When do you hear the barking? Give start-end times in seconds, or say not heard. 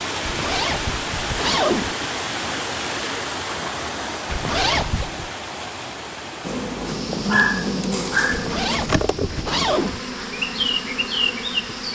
7.2-8.5.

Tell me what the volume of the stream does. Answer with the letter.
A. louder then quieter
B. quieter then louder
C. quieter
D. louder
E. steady
C.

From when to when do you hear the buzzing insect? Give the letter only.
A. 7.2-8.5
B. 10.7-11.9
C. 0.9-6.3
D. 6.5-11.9
D.